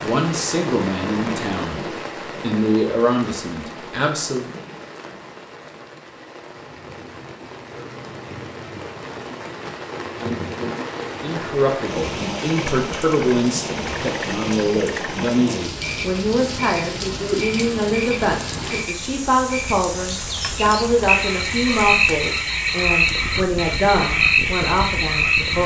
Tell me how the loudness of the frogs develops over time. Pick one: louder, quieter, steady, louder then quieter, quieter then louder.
louder.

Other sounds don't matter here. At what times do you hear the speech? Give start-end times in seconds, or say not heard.
0.0-4.5, 11.2-25.6.